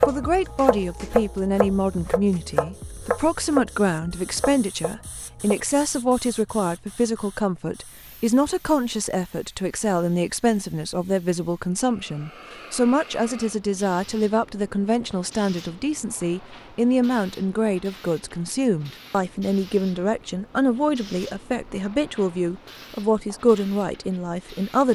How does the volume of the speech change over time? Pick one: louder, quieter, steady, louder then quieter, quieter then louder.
steady.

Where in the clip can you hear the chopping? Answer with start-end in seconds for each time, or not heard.
0.0-5.6.